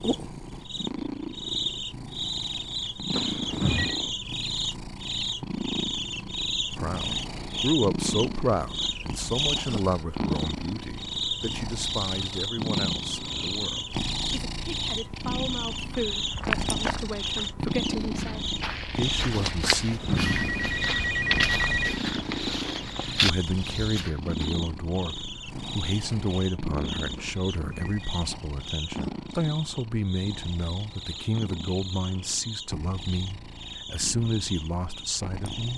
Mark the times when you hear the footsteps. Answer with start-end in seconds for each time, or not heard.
15.9-24.4.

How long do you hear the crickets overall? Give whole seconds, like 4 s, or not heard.
36 s.